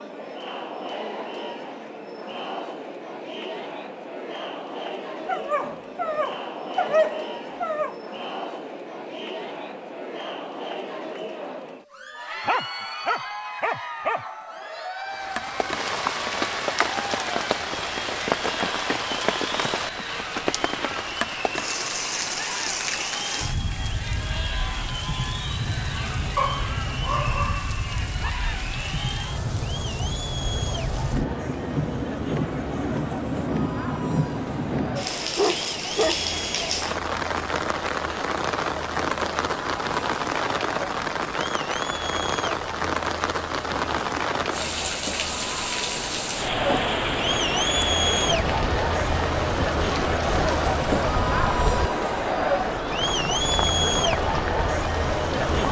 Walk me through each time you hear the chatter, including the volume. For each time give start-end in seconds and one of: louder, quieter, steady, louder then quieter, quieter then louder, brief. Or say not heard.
0.0-55.6 louder.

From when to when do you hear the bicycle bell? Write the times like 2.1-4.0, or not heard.
not heard.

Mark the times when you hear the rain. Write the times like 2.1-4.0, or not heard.
15.1-55.6.